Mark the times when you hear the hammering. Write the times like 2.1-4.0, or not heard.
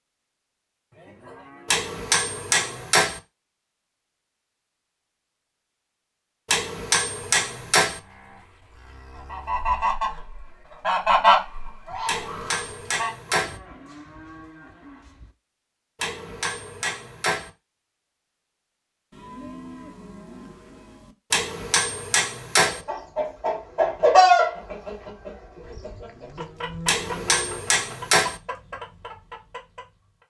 1.6-3.2, 6.5-8.0, 12.1-13.6, 16.0-17.5, 21.3-22.8, 26.9-28.4.